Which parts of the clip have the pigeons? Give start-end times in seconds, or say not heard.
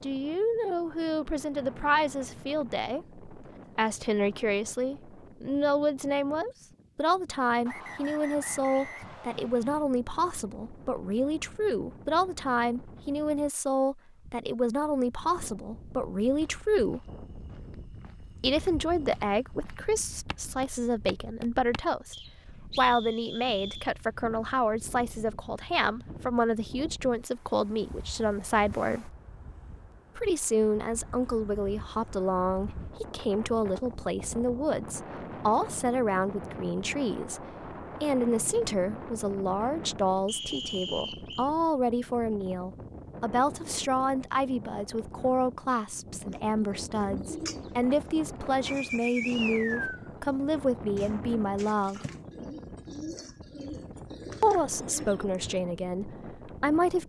46.2-55.6.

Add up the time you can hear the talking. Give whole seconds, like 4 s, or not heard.
52 s.